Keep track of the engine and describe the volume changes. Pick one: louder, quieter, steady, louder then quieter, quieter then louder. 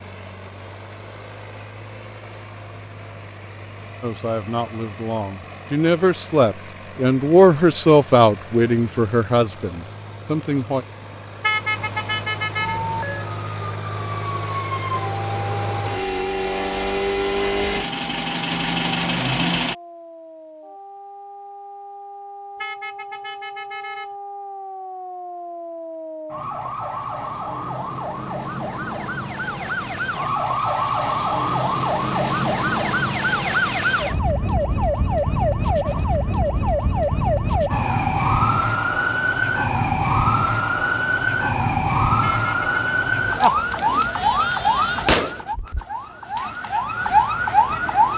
louder.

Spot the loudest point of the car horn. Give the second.
12 s.